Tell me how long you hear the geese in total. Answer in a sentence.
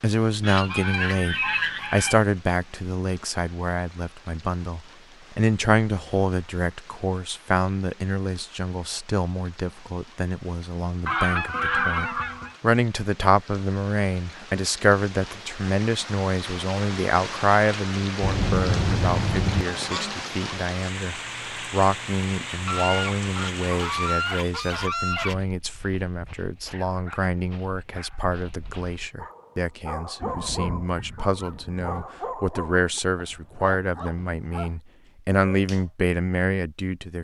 The geese can be heard for 10 seconds in total.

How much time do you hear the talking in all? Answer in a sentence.
You can hear the talking for 37 seconds altogether.